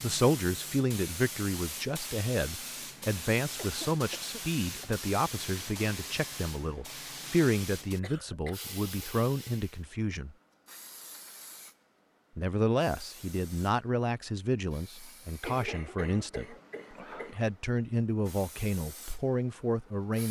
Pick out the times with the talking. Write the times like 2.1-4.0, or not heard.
0.0-10.3, 12.3-16.6, 17.3-20.2.